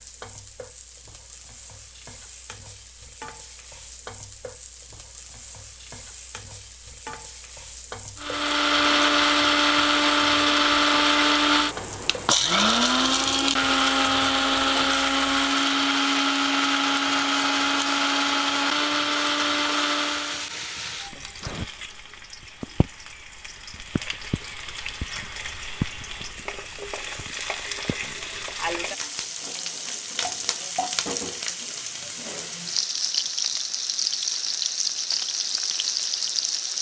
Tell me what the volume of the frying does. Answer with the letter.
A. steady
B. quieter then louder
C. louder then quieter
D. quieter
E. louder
E.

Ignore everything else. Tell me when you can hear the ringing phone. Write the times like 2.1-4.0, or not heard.
not heard.